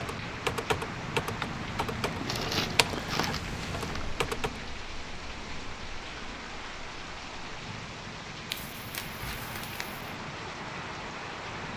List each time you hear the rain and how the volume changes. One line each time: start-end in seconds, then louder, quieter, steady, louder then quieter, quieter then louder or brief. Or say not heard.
0.0-11.7 steady.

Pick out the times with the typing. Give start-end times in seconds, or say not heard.
0.0-4.6.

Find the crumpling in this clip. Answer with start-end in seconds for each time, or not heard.
2.1-4.2, 8.5-10.0.